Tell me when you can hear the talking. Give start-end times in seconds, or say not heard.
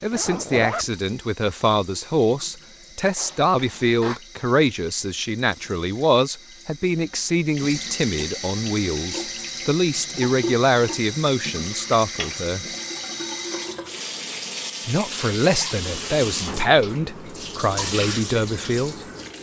0.0-12.7, 14.8-19.1.